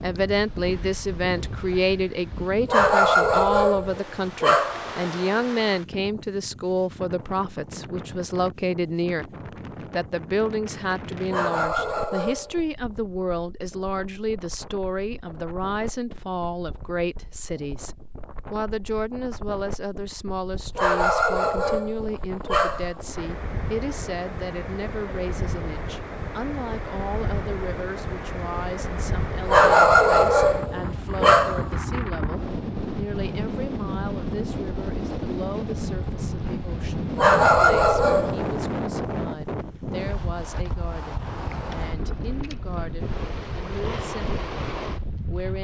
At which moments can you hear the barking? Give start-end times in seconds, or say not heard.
2.6-4.9, 11.2-12.6, 20.8-22.9, 29.4-31.7, 37.1-38.5.